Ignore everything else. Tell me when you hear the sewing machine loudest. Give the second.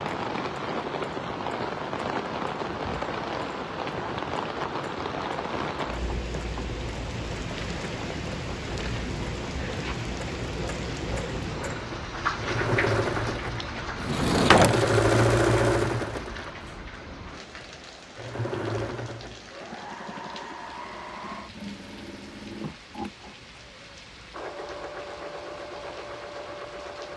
15 s.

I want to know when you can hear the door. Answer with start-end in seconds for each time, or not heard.
13.9-15.0.